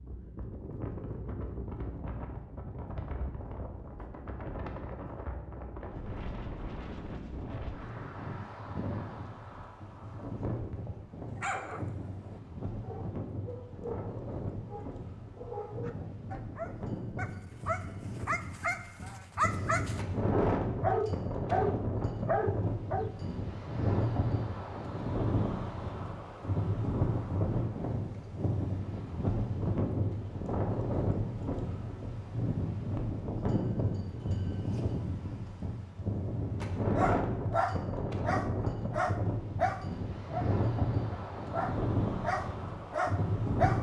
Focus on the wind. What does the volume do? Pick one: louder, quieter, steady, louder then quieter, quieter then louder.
louder.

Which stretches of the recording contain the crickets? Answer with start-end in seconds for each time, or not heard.
not heard.